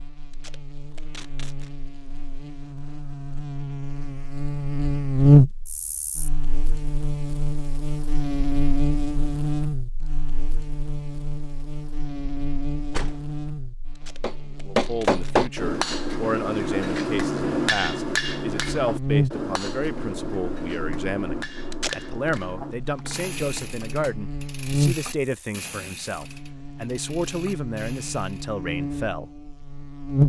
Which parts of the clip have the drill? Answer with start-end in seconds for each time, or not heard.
not heard.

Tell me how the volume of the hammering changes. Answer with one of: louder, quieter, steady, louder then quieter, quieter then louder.
quieter.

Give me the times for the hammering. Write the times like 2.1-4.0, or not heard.
14.2-24.2.